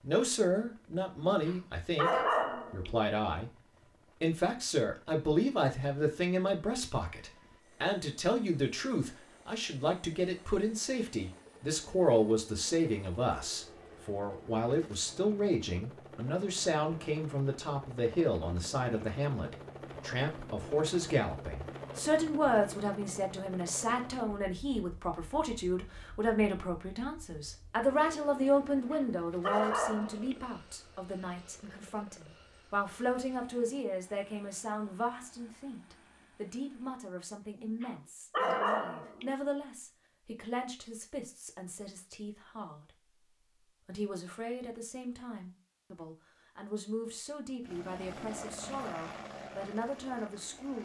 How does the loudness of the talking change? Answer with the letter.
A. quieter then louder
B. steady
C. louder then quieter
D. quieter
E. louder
D.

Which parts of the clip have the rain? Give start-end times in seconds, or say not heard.
not heard.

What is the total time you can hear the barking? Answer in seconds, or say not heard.
5 s.